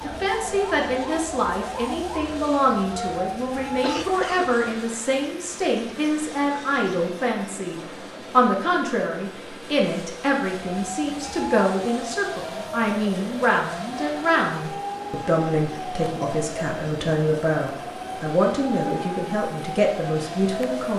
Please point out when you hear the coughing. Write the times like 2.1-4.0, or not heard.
3.8-4.7.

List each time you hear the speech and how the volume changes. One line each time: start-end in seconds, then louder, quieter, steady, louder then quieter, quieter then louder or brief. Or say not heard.
0.0-20.9 steady.